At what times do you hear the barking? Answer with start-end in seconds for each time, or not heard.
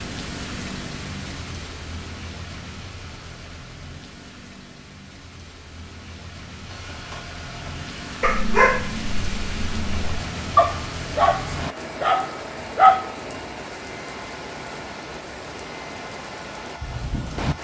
8.2-13.1.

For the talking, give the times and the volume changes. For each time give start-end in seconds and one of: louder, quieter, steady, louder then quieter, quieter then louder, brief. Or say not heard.
not heard.